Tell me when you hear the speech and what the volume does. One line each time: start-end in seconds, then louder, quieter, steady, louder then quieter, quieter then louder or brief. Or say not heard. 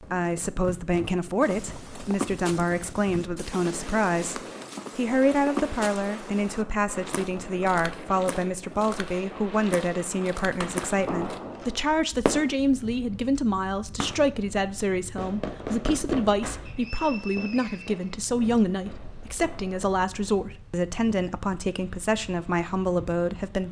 0.0-23.6 steady.